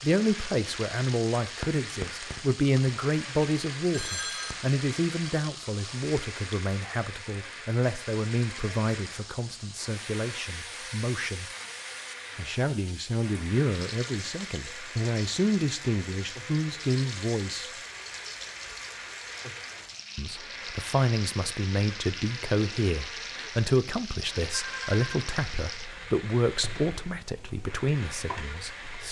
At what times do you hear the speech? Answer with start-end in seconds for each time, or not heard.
0.0-11.4, 12.3-17.7, 20.1-29.0.